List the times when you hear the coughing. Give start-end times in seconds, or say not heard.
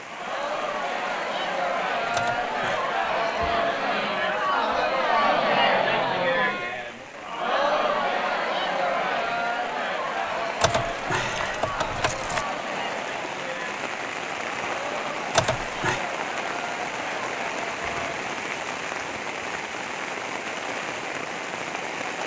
not heard.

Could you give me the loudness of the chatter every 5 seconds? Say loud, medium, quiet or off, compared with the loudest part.
loud, loud, medium, medium, off.